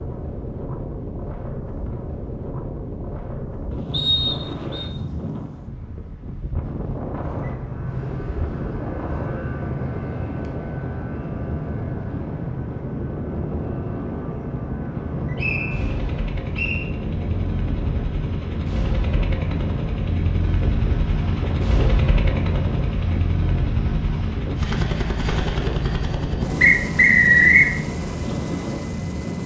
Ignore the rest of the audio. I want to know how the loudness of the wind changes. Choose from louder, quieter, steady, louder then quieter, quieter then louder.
steady.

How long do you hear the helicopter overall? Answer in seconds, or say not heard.
22 s.